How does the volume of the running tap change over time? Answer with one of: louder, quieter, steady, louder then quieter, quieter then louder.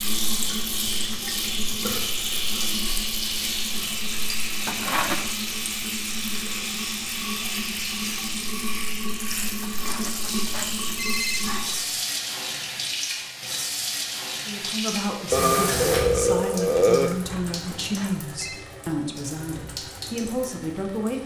quieter.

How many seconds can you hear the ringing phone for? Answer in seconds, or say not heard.
4 s.